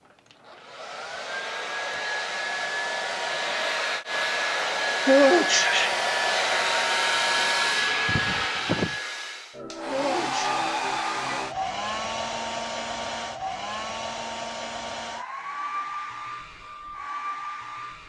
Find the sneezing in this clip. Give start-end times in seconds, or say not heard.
5.0-6.0, 9.9-10.6.